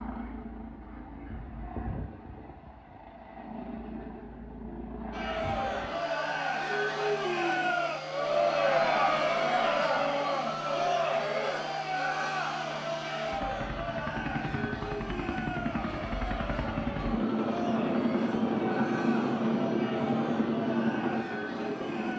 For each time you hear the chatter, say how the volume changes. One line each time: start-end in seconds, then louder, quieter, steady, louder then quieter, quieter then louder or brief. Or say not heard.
5.1-22.1 quieter.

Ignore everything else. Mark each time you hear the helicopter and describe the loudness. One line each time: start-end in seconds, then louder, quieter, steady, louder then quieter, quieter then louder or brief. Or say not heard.
0.0-22.1 louder.